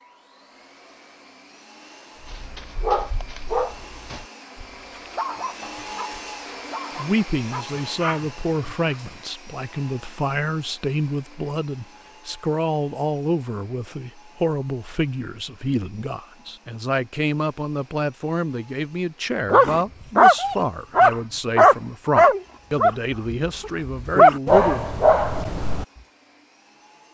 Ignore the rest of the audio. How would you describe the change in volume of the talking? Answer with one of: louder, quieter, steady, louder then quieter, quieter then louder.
steady.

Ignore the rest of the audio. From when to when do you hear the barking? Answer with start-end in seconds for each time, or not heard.
2.2-8.9, 19.5-25.9.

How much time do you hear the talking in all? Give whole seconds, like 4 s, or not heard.
18 s.